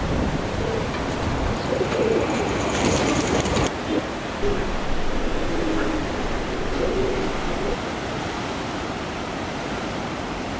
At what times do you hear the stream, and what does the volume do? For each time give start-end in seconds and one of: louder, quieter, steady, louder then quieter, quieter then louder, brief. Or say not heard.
0.0-10.5 steady.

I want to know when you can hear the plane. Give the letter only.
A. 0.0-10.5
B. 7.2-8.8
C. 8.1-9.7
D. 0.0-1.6
D.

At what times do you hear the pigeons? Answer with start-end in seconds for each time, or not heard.
0.5-7.8.